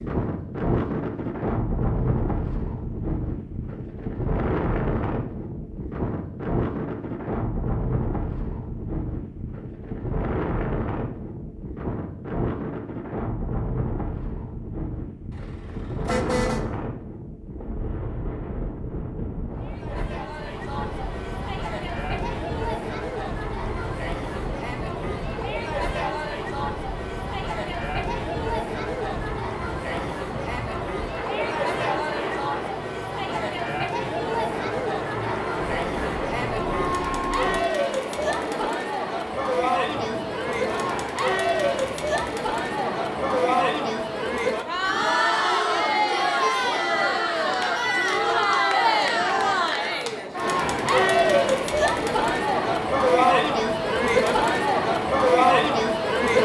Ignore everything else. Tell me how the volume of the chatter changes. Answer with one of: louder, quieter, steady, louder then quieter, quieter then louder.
louder.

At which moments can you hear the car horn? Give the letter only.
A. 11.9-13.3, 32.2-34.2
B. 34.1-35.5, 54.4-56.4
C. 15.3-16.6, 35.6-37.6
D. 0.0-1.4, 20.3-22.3
C.